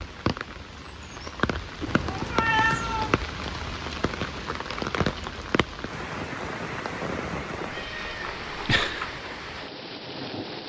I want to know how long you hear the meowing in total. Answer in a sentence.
The meowing can be heard for 3 seconds in total.